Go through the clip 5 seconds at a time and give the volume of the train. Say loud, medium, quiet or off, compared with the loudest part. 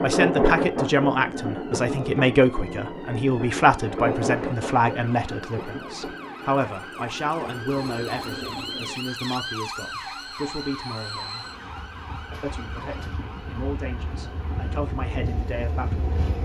loud, quiet, quiet, medium.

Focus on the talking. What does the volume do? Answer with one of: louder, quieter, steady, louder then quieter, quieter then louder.
quieter.